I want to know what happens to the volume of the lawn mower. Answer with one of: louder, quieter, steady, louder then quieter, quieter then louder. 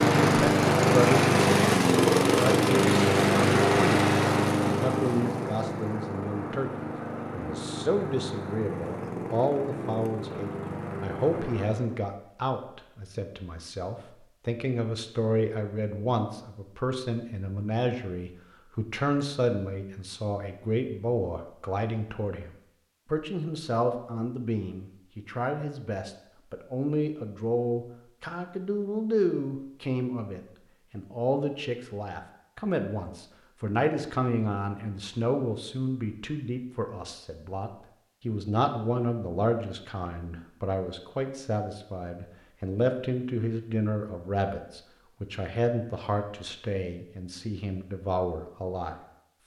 quieter.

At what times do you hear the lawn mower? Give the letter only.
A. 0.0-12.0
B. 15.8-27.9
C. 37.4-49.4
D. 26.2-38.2
A.